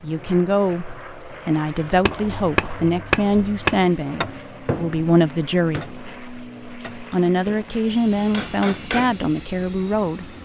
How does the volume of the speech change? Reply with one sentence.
The volume of the speech stays about the same.